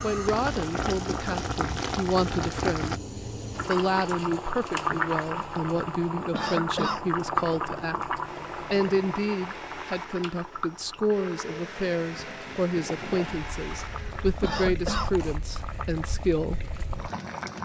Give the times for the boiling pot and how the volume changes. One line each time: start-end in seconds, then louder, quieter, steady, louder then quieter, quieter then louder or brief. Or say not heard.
0.0-17.6 quieter.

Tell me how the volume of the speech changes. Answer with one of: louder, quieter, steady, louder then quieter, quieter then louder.
steady.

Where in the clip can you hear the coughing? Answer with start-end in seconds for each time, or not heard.
6.3-7.0, 14.4-15.1.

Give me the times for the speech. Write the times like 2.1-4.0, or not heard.
0.0-3.0, 3.6-16.6.